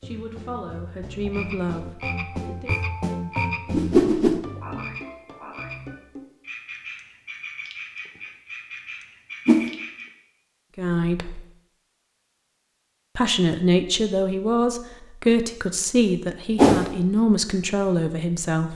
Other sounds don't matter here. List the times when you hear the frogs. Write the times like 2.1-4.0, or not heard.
0.0-10.1.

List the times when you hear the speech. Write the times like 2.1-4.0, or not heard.
0.0-2.7, 10.8-11.4, 13.2-18.7.